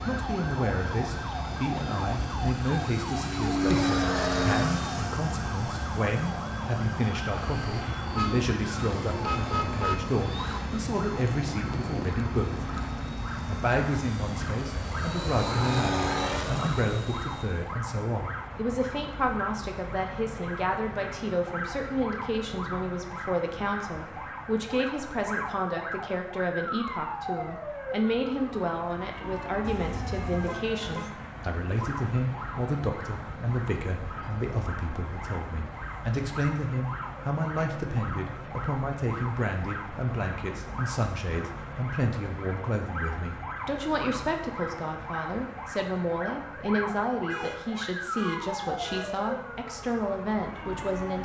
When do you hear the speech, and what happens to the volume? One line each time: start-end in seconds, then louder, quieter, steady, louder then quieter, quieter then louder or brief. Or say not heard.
0.0-12.7 steady
13.4-51.2 steady.